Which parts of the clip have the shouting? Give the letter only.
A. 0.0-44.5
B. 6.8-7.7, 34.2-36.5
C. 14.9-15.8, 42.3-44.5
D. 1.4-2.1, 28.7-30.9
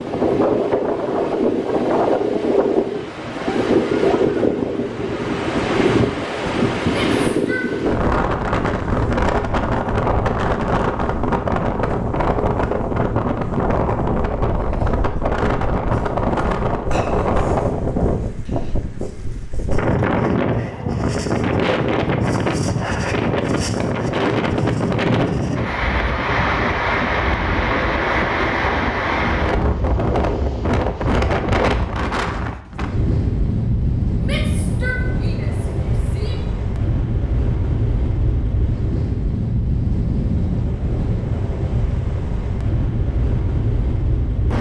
B.